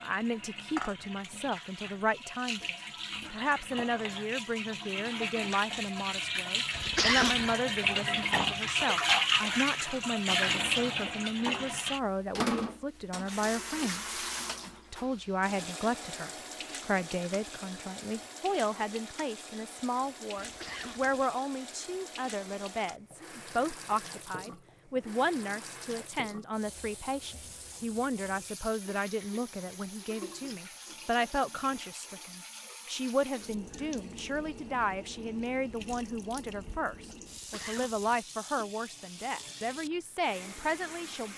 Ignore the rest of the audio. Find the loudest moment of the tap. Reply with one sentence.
The loudest moment of the tap is at 9 seconds.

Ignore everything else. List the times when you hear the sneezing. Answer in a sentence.
The sneezing can be heard from 6.8 to 7.5 s, from 20.4 to 21.2 s and from 37.3 to 38.2 s.